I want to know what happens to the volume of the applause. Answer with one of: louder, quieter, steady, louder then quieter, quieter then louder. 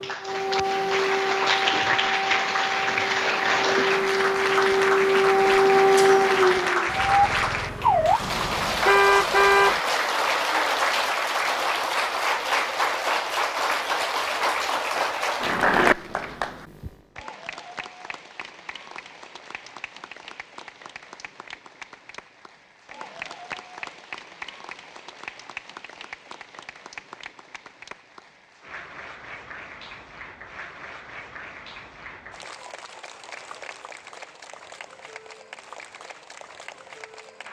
quieter.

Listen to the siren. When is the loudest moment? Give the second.
6 s.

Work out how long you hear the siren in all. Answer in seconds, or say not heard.
8 s.